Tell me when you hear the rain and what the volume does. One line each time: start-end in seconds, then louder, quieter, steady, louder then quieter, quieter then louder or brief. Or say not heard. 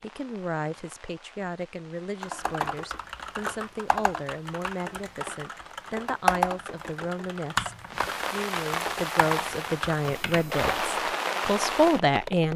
0.0-12.5 louder.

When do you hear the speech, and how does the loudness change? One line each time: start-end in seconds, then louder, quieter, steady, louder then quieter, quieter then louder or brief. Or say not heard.
0.0-12.5 louder.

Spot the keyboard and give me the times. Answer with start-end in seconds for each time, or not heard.
2.2-10.9.